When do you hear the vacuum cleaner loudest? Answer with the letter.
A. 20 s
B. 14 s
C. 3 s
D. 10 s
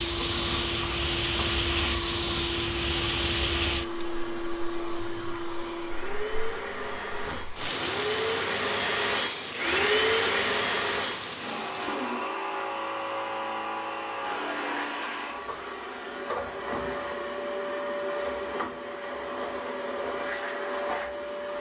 D.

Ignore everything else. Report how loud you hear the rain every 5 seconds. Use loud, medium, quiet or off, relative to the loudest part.
loud, medium, medium, off, off.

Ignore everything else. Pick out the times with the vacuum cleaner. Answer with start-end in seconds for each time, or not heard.
0.0-21.5.